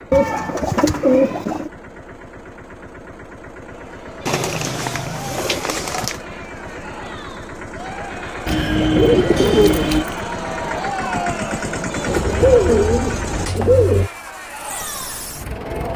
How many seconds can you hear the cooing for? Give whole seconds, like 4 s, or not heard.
7 s.